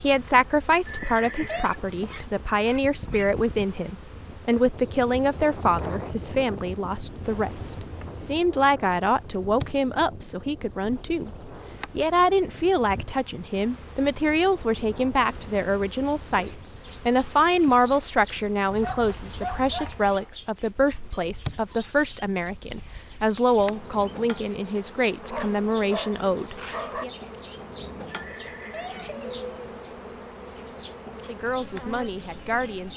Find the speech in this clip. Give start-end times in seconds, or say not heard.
0.0-27.1, 31.2-32.9.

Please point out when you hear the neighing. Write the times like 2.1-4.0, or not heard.
0.8-1.7, 28.1-29.8.